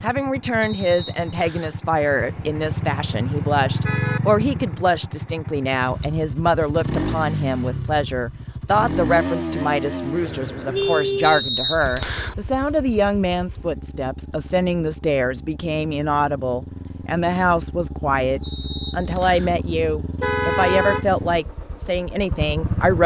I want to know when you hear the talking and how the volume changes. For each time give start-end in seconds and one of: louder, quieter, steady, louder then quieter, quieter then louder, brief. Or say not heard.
0.0-23.0 steady.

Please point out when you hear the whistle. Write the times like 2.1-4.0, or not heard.
0.6-1.8, 11.2-12.3, 18.4-19.6.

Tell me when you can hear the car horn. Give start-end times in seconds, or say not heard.
2.1-4.2, 10.2-11.5, 20.2-21.1.